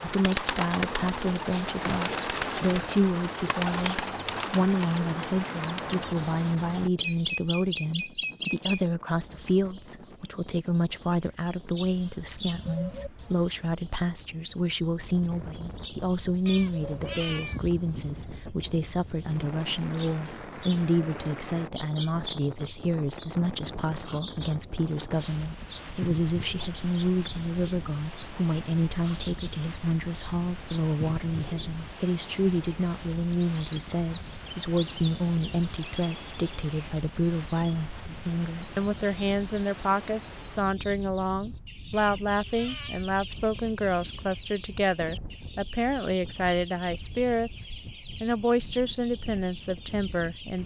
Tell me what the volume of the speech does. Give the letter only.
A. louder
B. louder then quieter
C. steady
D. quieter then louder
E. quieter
C.